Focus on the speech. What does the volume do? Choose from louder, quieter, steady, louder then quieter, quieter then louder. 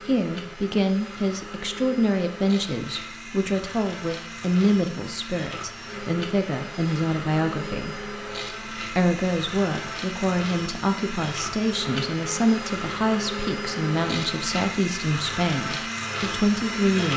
steady.